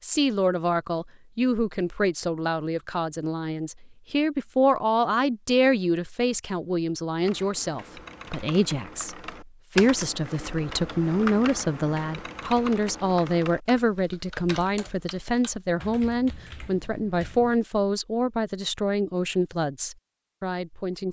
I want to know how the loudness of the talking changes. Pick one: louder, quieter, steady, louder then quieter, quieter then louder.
steady.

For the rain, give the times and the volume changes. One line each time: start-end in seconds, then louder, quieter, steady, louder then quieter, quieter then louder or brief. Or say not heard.
not heard.